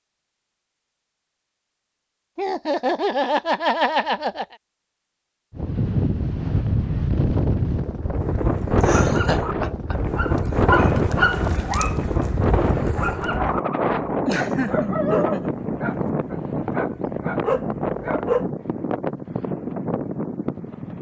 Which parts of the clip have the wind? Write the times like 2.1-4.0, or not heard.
5.5-20.9.